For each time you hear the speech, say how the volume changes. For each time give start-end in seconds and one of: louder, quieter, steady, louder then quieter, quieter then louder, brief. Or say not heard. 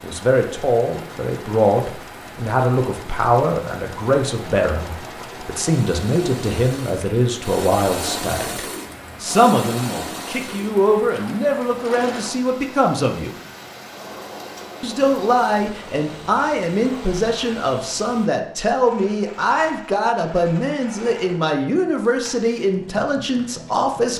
0.0-13.3 steady
14.8-24.1 steady.